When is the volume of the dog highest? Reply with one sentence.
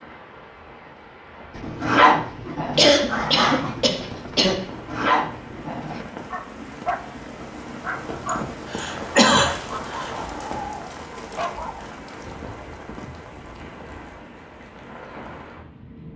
The loudest moment of the dog is at 2 seconds.